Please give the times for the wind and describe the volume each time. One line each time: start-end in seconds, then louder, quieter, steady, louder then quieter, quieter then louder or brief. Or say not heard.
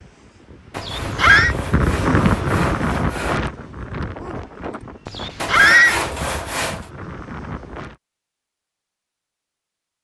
0.0-8.0 louder then quieter.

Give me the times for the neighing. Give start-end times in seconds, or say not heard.
0.8-1.6, 5.0-6.0.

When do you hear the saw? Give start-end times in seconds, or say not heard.
0.7-3.4, 5.3-6.9.